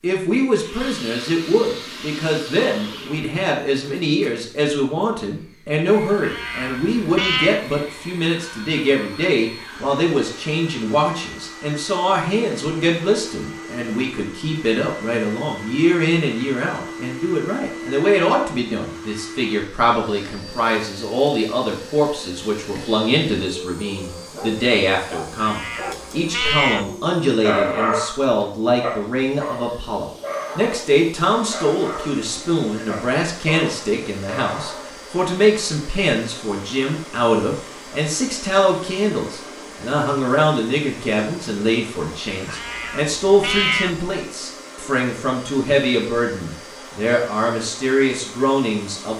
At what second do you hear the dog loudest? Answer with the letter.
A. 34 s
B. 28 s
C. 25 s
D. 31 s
B.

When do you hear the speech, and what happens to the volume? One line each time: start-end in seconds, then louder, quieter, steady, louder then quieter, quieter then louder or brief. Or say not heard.
0.0-49.1 steady.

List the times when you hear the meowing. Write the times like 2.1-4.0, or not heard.
6.2-7.7, 25.4-26.9, 42.5-44.0.